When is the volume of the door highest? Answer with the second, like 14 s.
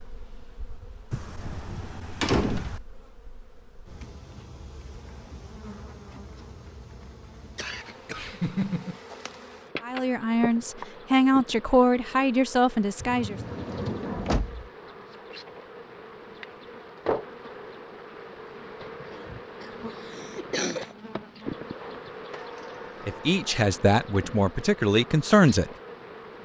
2 s.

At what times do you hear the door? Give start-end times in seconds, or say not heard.
1.1-2.8, 13.0-14.7, 22.3-23.6.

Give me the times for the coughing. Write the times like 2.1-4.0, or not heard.
7.5-9.0, 19.1-20.9.